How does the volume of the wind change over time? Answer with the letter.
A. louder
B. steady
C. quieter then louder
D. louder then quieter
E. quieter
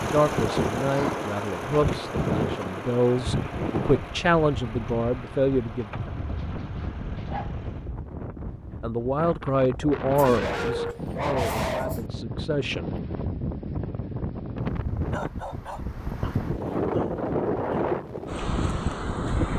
C.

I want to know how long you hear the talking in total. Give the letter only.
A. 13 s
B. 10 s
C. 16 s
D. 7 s
B.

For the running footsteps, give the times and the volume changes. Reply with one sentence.
The running footsteps can't be heard in this clip.